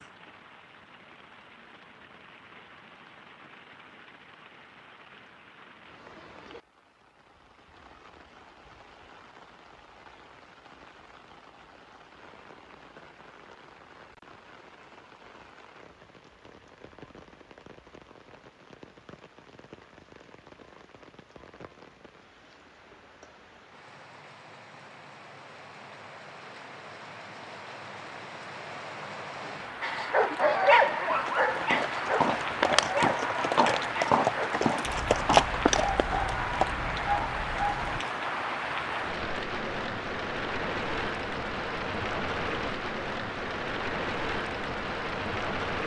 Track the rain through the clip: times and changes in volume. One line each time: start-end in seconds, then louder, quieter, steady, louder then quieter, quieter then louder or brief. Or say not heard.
0.0-45.8 louder.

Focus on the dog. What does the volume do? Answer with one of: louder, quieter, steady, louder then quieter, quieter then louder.
quieter.